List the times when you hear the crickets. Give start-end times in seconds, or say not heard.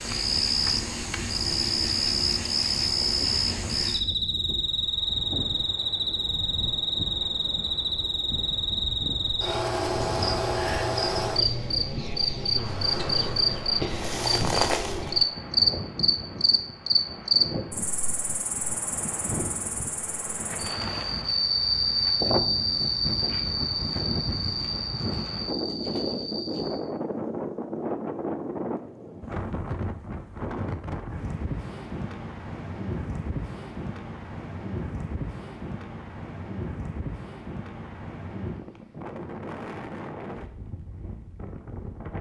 0.0-26.9.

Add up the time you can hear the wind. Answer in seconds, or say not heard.
42 s.